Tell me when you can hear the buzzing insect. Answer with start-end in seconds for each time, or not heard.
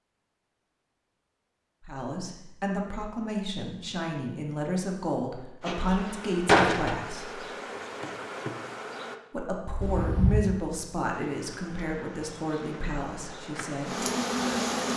5.6-9.2, 11.2-14.9.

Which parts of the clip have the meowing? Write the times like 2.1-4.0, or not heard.
9.8-10.4.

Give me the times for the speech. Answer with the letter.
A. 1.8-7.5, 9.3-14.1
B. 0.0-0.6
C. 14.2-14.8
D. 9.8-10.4
A.